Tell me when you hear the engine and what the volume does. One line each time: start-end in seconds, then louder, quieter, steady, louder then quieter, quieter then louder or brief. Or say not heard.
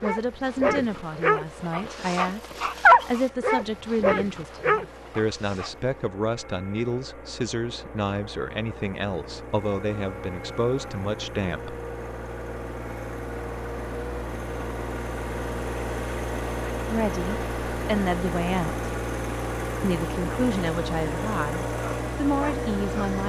0.0-23.2 louder.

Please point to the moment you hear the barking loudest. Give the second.
3 s.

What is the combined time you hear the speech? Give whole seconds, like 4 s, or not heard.
17 s.